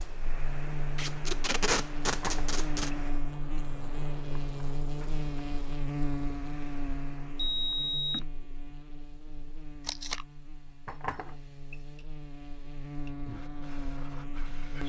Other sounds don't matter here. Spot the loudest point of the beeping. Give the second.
8 s.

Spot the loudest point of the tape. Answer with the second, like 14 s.
2 s.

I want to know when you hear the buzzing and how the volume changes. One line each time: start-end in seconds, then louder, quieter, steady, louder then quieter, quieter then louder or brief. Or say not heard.
0.0-14.8 quieter then louder.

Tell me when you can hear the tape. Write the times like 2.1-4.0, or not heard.
0.9-2.9, 9.8-10.2.